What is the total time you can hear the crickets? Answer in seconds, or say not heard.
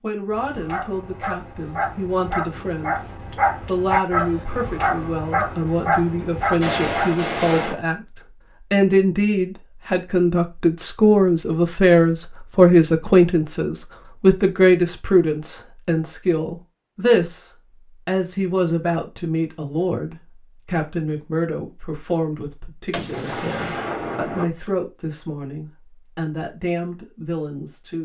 not heard.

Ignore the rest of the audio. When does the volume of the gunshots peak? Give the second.
7 s.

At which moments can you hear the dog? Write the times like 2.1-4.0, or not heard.
0.3-7.1.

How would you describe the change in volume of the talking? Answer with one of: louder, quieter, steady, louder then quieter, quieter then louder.
louder then quieter.